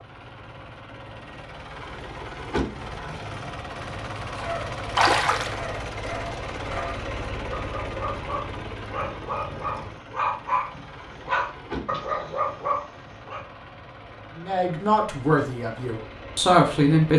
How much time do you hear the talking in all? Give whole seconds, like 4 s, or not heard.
3 s.